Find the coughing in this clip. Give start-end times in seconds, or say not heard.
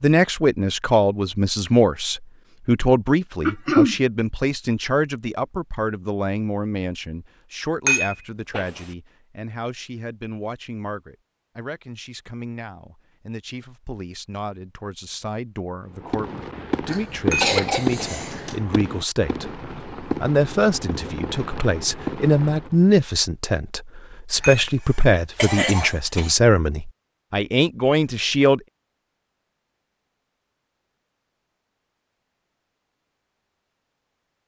3.5-4.0, 16.9-18.6, 25.4-26.4.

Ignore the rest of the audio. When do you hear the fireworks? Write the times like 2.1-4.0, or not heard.
16.0-22.9.